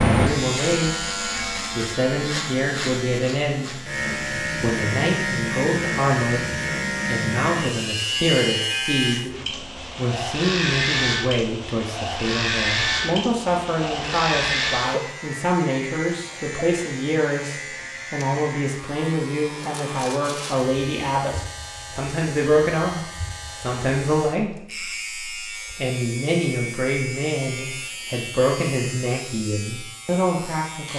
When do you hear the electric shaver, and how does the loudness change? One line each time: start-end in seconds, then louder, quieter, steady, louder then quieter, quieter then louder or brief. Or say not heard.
0.0-30.9 quieter.